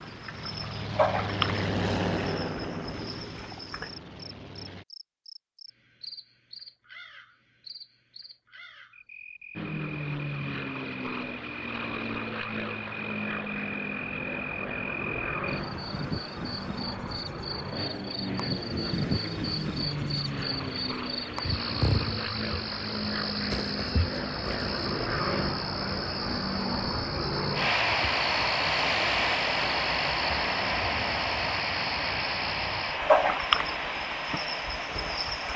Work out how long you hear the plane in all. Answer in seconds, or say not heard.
31 s.